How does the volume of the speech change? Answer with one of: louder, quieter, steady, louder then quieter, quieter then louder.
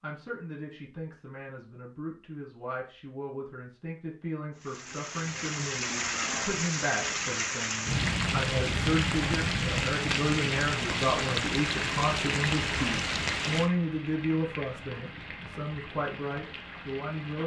louder.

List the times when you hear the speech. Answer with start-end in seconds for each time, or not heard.
0.0-17.4.